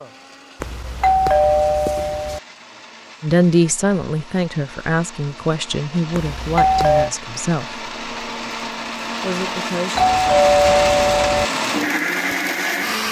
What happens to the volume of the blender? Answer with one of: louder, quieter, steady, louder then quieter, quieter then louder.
louder.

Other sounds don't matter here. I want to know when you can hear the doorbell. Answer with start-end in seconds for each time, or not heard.
0.6-2.4, 6.1-7.1, 9.9-11.5.